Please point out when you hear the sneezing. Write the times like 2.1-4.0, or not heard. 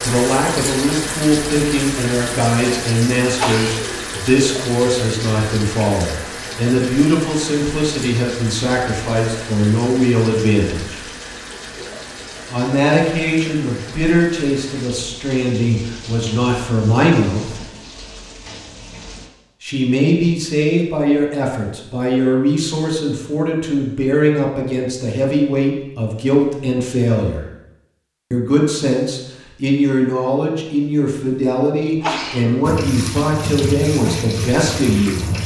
3.4-4.0, 32.0-33.3.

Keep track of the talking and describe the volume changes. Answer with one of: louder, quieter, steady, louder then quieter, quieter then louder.
steady.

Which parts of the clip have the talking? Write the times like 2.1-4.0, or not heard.
0.0-11.0, 12.5-17.6, 19.6-27.4, 28.3-35.2.